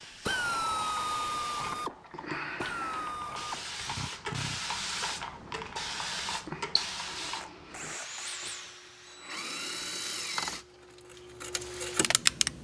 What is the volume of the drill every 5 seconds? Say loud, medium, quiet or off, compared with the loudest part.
loud, medium, loud.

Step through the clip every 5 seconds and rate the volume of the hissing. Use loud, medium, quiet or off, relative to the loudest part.
loud, loud, off.